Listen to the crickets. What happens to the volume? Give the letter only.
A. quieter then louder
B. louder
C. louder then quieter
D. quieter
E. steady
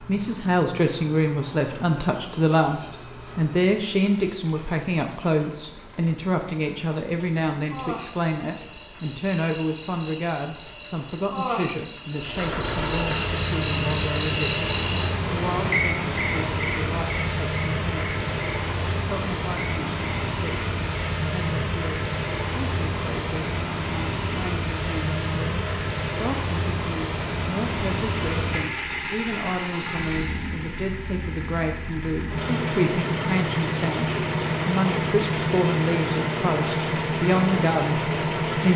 C.